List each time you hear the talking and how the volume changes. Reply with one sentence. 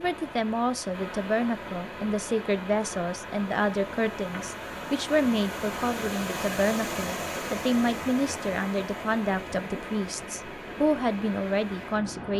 You can hear the talking from 0.0 to 12.3 s, at a steady volume.